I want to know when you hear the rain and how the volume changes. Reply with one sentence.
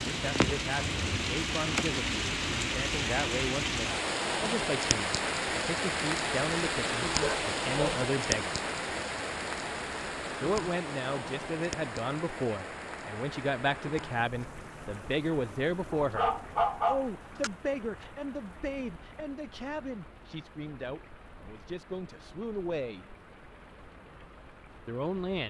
The rain can be heard from 0.0 to 25.4 s, getting quieter.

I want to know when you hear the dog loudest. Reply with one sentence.
The volume of the dog peaks at 17 seconds.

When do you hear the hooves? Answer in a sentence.
The hooves can't be heard in this clip.